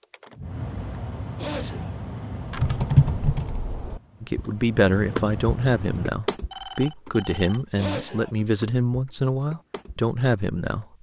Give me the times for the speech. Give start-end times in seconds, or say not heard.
4.2-10.8.